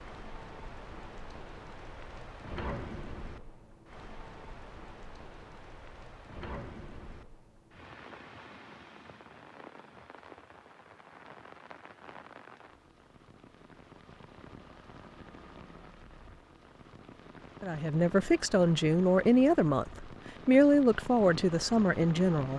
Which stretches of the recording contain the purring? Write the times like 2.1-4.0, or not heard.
not heard.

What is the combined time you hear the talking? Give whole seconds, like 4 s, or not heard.
5 s.